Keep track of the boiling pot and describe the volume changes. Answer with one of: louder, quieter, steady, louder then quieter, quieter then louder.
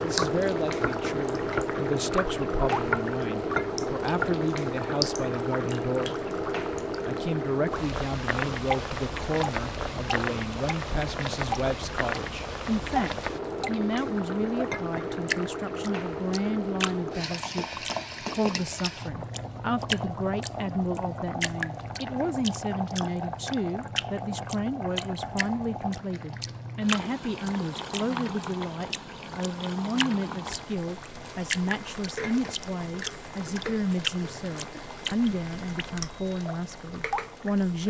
quieter.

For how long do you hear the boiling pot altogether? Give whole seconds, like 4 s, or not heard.
38 s.